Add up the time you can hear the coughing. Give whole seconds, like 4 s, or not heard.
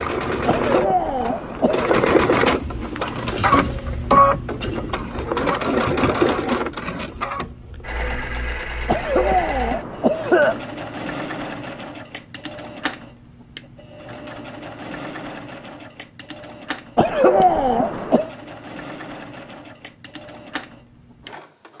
5 s.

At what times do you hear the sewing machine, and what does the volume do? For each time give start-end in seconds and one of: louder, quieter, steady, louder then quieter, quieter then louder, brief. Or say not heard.
0.0-21.7 quieter.